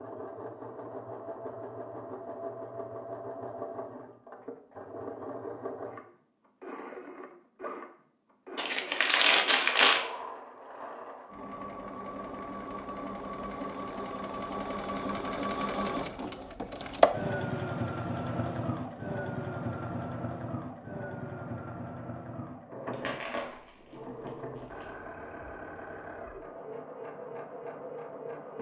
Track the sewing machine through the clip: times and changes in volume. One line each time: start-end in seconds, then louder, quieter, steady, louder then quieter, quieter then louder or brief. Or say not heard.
0.0-28.5 louder then quieter.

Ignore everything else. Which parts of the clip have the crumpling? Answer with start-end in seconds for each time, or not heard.
8.6-10.1, 22.9-24.9.